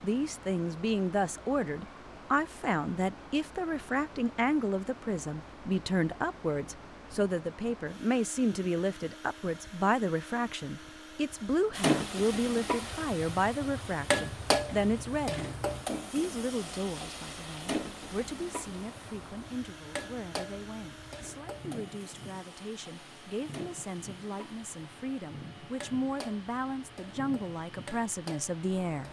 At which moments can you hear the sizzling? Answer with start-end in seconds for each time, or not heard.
11.7-29.0.